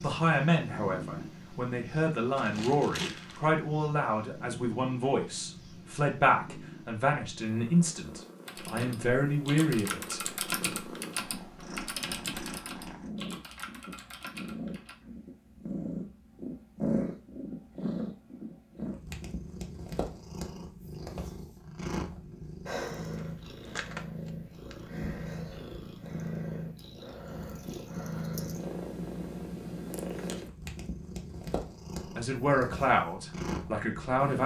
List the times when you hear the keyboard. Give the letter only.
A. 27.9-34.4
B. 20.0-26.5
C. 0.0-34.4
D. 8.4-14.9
D.